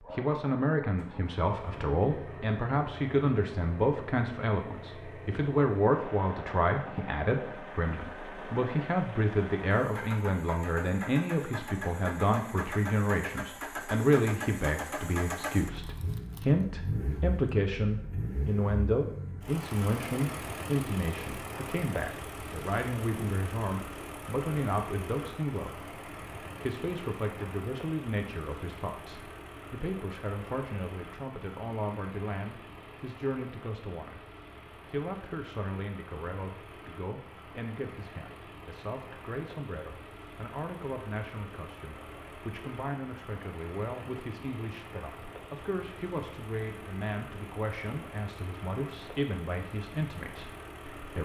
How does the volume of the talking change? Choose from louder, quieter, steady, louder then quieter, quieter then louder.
quieter.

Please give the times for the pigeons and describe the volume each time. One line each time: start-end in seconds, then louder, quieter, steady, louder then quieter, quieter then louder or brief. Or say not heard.
not heard.